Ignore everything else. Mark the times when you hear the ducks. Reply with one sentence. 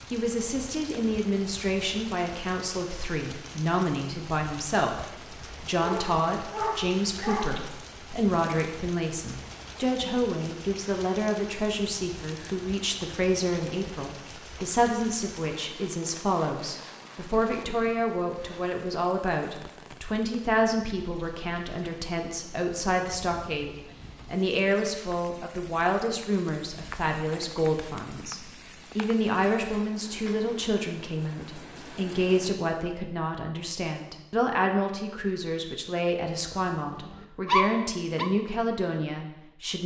The ducks can't be heard in this clip.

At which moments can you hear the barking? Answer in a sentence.
The barking can be heard from 5.8 to 7.7 s and from 36.8 to 38.3 s.